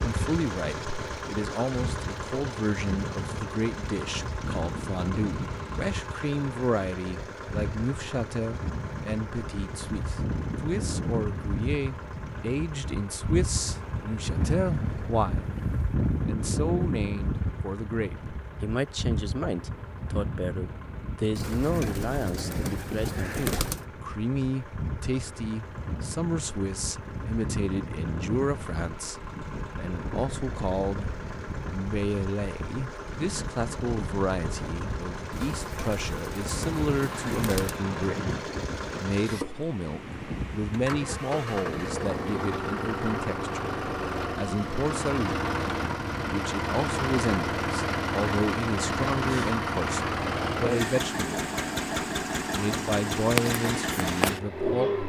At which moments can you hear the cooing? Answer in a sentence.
The cooing can be heard from 21.4 to 23.9 s and from 35.3 to 37.8 s.